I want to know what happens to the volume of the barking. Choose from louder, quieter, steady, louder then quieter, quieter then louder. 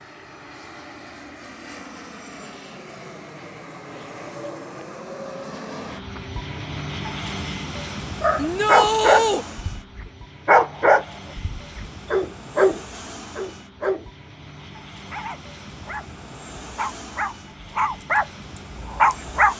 quieter then louder.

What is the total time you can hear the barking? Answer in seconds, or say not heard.
11 s.